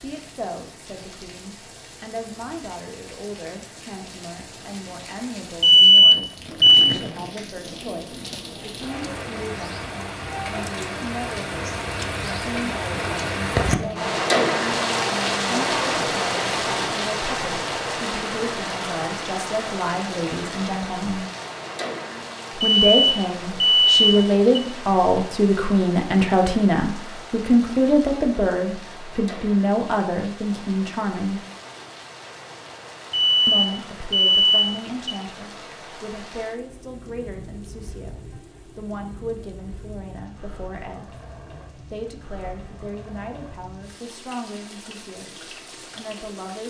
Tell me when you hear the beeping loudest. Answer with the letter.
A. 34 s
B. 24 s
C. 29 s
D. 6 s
D.